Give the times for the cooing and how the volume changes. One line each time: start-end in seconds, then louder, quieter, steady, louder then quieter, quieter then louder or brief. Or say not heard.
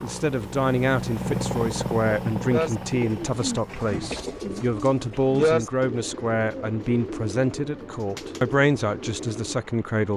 2.5-9.6 louder then quieter.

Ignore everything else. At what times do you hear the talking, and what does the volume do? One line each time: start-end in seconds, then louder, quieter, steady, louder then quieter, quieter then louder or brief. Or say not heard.
0.0-10.1 steady.